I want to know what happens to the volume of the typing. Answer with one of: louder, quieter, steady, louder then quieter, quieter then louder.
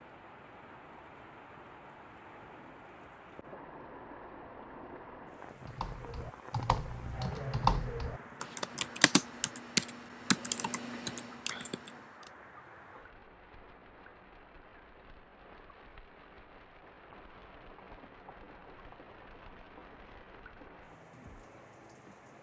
louder then quieter.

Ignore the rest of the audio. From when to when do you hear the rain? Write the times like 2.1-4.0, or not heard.
0.0-22.3.